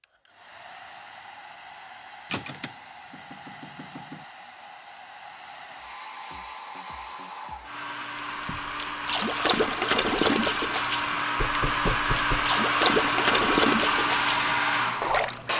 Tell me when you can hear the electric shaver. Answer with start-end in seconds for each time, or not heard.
not heard.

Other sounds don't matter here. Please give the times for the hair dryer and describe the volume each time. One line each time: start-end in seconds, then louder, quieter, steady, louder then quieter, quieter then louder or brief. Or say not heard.
0.0-15.5 louder.